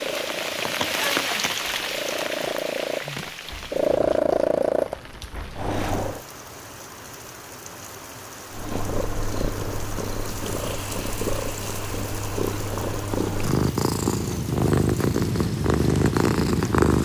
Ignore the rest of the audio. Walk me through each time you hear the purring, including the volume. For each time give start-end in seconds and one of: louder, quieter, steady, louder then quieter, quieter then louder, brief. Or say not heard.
0.0-6.2 louder then quieter
8.5-17.0 louder.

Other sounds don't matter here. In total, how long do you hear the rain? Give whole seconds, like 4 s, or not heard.
17 s.